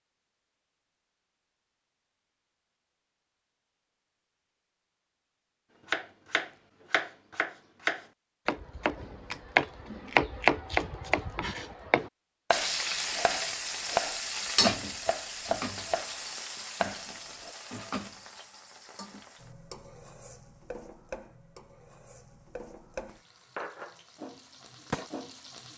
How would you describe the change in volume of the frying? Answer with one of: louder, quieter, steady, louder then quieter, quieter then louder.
quieter then louder.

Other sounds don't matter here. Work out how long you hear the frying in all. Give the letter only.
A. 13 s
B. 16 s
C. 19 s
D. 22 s
A.